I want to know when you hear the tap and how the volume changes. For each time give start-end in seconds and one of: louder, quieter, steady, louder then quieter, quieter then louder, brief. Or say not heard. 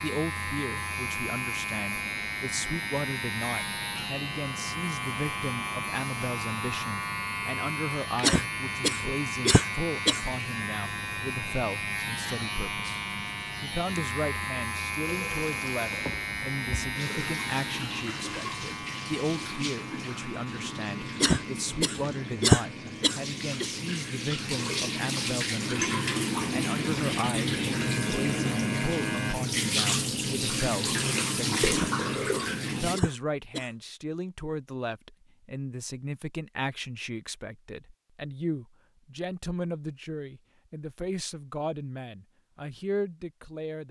15.0-33.0 louder.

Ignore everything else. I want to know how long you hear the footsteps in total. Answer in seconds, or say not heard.
not heard.